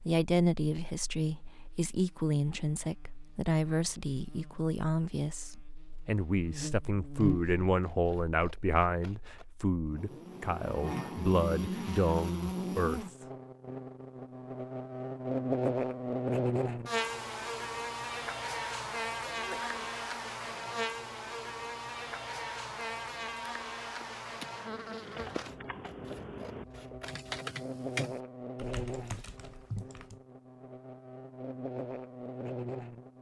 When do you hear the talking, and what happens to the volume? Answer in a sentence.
You can hear the talking from 0.1 to 13.1 s, at a steady volume.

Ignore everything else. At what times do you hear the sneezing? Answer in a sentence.
You can hear the sneezing from 19.3 to 19.9 s.